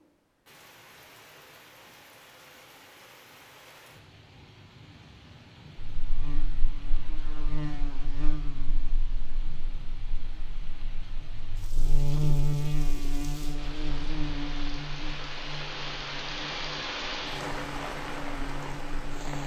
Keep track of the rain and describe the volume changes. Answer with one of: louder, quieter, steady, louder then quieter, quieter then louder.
louder.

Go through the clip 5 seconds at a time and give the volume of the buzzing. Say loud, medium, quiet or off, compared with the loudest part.
off, medium, loud, medium.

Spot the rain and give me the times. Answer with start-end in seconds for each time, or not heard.
0.0-19.4.